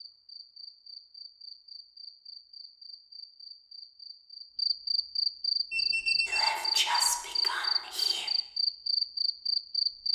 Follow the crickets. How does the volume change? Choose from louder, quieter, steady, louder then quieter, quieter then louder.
louder.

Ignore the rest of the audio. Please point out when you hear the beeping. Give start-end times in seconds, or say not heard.
5.7-6.6.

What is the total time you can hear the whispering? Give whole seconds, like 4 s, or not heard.
2 s.